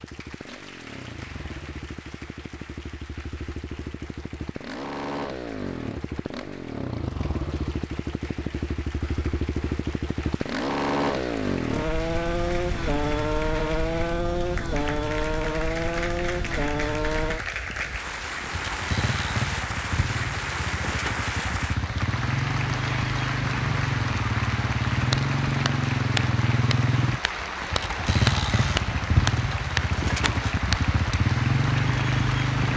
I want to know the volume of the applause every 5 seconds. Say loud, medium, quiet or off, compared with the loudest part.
quiet, quiet, medium, loud, loud, loud, loud.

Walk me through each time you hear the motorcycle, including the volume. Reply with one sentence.
You can hear the motorcycle from 0.0 to 32.7 s, getting louder.